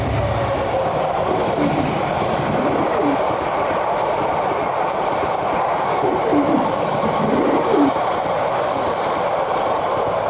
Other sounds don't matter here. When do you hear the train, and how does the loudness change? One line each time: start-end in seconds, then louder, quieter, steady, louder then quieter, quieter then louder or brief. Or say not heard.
0.0-10.2 steady.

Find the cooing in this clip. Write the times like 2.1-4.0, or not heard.
1.2-3.1, 6.0-7.9.